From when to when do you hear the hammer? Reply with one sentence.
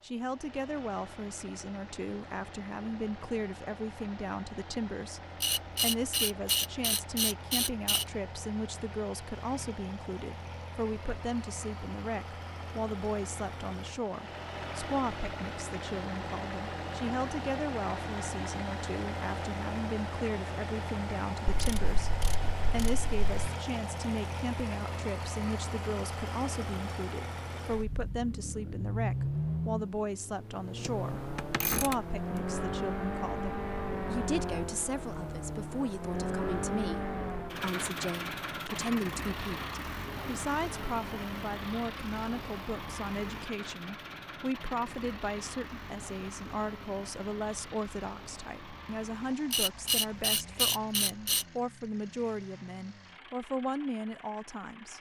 The hammer can't be heard in this clip.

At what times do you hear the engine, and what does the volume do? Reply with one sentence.
The engine can be heard from 0.0 to 54.9 s, getting louder then quieter.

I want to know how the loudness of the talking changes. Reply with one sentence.
The volume of the talking stays about the same.